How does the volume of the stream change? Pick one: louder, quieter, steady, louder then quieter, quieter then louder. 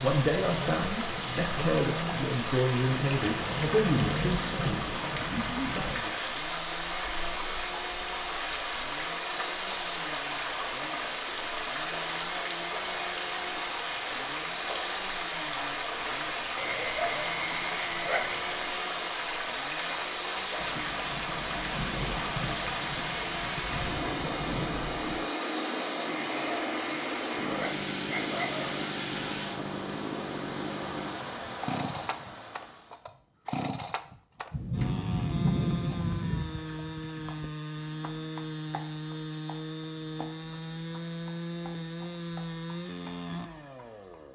steady.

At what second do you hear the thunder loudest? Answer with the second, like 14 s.
36 s.